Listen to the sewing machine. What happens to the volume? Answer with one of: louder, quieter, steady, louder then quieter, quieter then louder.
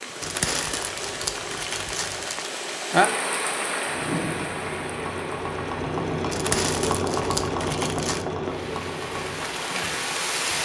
louder then quieter.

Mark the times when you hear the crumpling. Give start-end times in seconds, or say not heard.
0.2-2.5, 6.3-8.2.